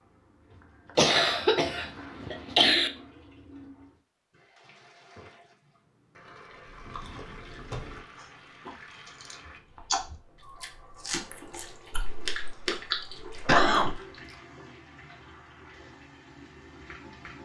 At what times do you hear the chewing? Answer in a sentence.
The chewing can be heard from 6.8 to 14.3 s.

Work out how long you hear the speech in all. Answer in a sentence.
The speech can't be heard in this clip.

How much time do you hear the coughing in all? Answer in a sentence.
You can hear the coughing for 4 seconds altogether.